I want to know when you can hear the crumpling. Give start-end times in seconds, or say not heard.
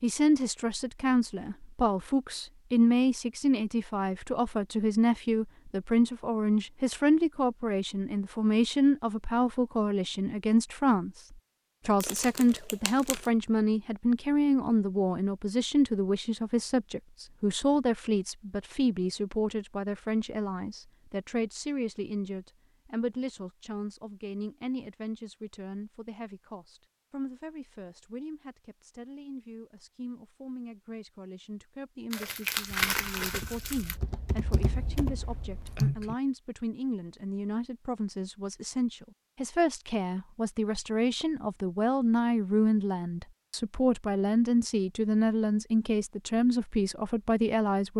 12.0-13.3, 32.1-34.0.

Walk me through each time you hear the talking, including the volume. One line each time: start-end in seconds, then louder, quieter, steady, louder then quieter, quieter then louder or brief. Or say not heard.
0.0-47.9 quieter then louder.